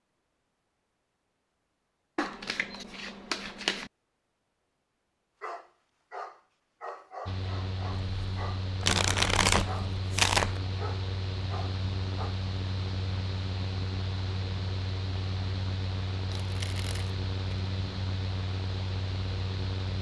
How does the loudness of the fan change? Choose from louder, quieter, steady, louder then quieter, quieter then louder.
steady.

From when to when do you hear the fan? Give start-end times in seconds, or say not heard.
7.2-19.9.